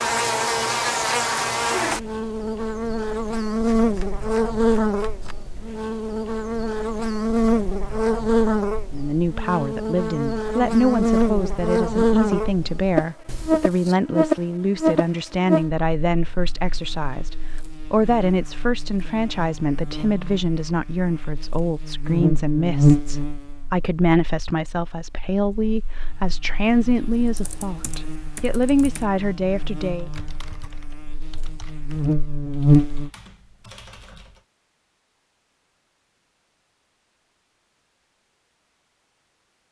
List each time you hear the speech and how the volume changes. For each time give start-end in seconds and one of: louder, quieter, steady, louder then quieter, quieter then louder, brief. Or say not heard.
8.9-30.1 steady.